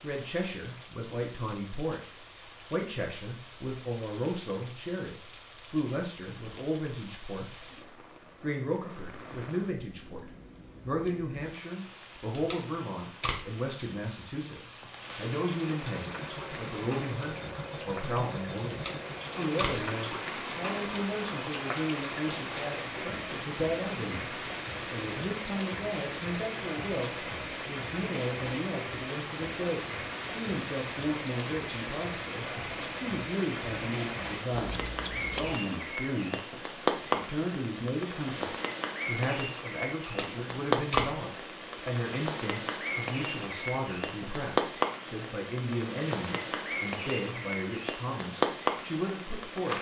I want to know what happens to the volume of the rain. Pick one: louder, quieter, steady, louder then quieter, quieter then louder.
louder.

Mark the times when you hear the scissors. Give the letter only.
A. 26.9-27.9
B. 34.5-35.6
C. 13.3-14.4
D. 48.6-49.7
B.